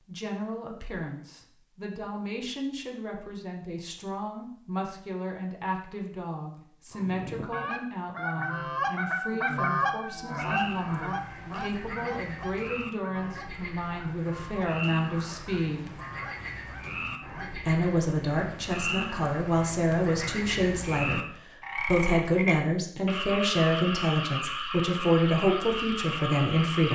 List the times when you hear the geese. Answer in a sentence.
You can hear the geese from 6.9 to 17.7 s.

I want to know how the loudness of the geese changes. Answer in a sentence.
The loudness of the geese goes down.